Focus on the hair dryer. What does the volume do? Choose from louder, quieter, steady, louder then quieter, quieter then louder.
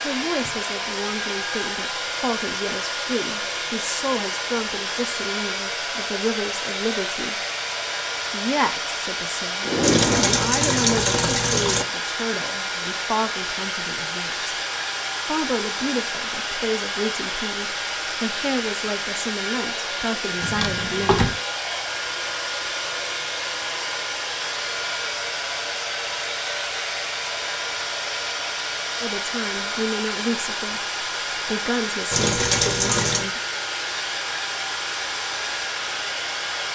steady.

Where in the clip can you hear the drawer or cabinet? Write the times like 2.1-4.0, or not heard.
9.6-11.1, 20.4-21.4.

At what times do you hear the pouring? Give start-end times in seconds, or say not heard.
9.8-11.8, 32.1-33.3.